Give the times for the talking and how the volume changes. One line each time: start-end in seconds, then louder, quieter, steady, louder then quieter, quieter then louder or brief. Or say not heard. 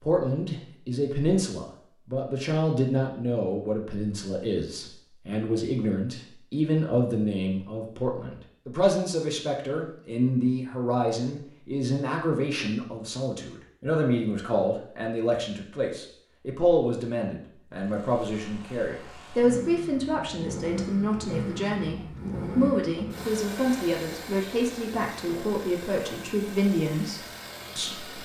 0.0-28.2 steady.